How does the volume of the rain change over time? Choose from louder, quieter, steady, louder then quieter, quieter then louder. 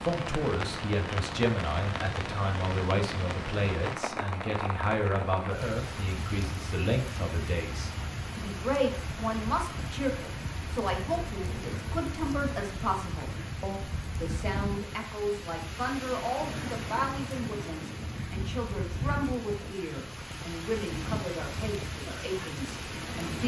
steady.